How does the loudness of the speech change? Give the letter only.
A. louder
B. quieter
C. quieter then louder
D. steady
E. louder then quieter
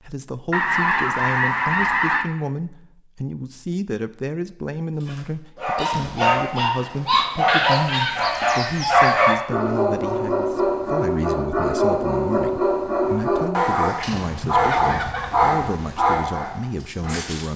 D.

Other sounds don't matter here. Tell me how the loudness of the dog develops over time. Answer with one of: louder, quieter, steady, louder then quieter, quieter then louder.
steady.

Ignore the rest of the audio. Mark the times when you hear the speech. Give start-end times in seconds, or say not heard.
0.0-17.5.